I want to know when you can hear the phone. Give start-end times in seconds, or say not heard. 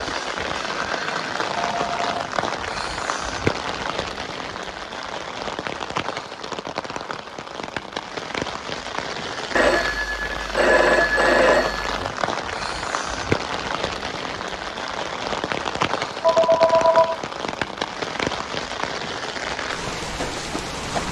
1.5-2.1, 9.6-12.2, 16.2-17.2.